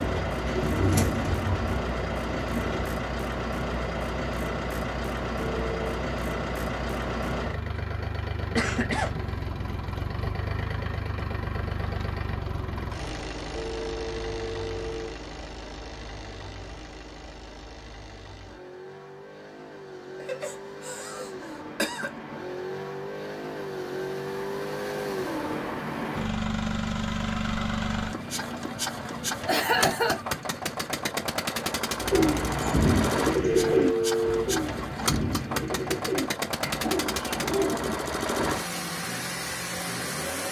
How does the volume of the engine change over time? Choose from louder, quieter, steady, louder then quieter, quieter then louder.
quieter then louder.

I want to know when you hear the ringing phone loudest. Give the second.
34 s.